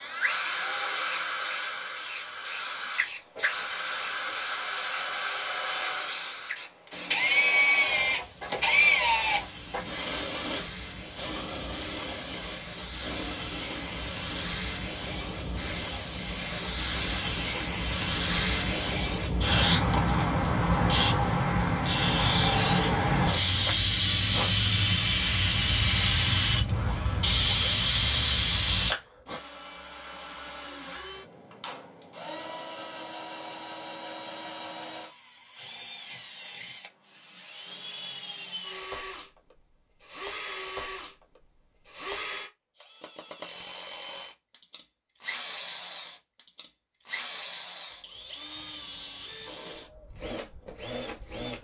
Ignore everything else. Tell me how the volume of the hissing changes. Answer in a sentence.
The loudness of the hissing goes up.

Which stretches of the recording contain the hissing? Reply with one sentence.
The hissing can be heard from 0.0 to 28.9 s.